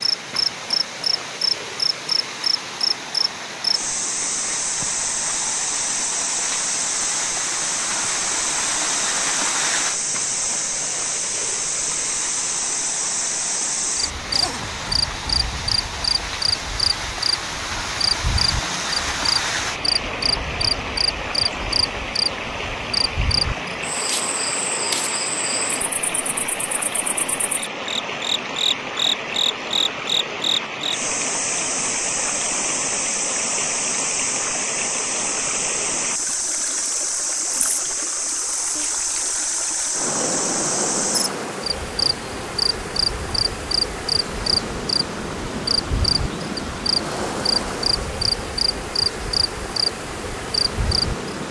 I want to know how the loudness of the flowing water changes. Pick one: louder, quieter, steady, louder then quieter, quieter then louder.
steady.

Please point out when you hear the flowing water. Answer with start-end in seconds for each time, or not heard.
0.0-51.4.